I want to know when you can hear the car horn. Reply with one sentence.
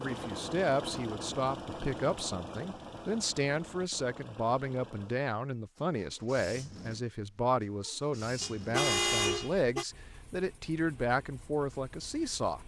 You can hear the car horn from 8.4 to 9.8 s.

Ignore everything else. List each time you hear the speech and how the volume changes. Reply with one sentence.
You can hear the speech from 0.0 to 12.6 s, at a steady volume.